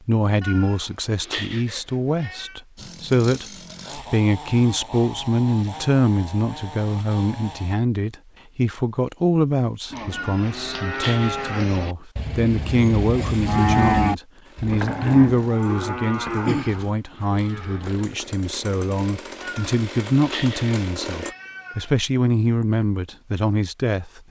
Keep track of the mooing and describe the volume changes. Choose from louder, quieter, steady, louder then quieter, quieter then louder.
louder then quieter.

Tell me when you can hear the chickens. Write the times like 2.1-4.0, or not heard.
not heard.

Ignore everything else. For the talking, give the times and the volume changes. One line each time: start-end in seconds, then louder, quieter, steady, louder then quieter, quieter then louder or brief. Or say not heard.
0.1-24.2 steady.